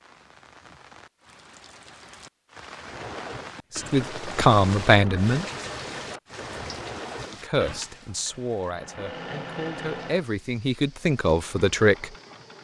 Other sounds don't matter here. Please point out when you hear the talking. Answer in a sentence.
You can hear the talking from 3.8 to 5.5 s and from 7.4 to 12.1 s.